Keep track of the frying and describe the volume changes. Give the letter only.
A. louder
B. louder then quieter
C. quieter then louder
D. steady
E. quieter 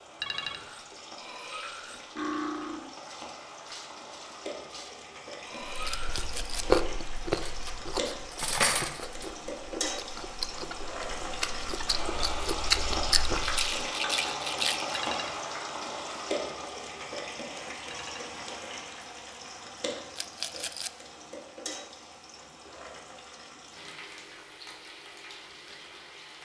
B.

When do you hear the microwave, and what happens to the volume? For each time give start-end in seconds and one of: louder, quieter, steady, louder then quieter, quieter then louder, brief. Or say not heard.
not heard.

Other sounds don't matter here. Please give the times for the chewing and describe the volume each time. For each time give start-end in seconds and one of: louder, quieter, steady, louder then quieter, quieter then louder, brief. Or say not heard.
5.7-13.7 quieter then louder.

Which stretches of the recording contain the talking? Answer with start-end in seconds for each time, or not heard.
not heard.